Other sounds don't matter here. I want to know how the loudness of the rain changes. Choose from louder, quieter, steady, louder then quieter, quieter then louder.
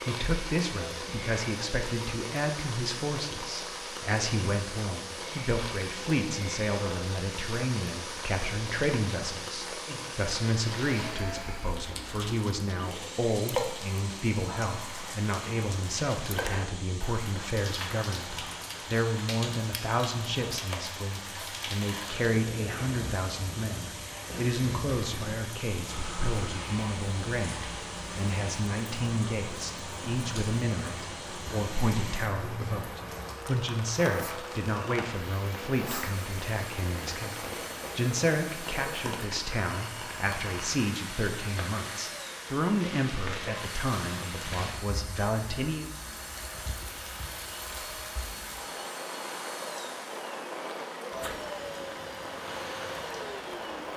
steady.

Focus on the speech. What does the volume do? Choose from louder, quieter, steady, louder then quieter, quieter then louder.
steady.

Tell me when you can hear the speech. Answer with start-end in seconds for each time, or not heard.
0.0-45.9.